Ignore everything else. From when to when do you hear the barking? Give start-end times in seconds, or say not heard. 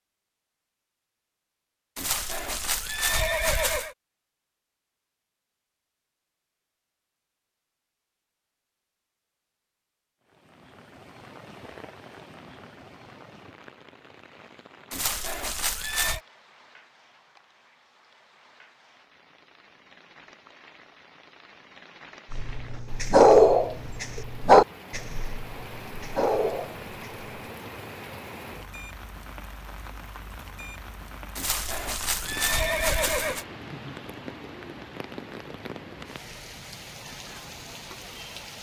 22.3-27.2.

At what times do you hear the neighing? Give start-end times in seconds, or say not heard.
1.9-4.0, 14.9-16.2, 31.4-33.5.